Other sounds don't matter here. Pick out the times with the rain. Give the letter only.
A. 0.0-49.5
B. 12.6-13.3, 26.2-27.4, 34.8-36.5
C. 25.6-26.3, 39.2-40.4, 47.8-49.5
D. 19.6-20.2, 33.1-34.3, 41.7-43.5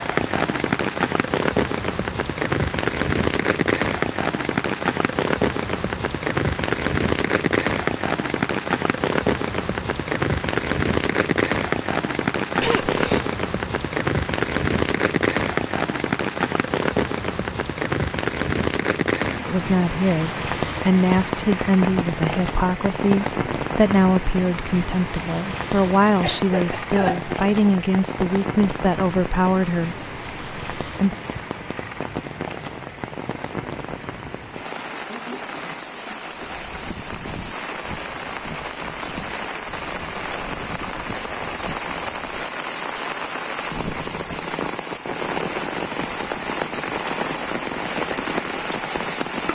A.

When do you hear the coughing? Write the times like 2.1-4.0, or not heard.
12.6-13.3, 26.2-27.4, 34.8-36.5.